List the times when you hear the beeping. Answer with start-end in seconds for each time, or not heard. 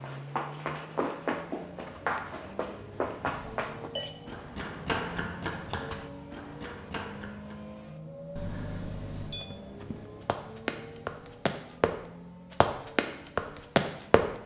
3.3-4.1, 8.3-9.5.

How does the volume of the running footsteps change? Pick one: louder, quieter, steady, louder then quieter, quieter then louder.
quieter then louder.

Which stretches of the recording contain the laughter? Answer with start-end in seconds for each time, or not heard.
not heard.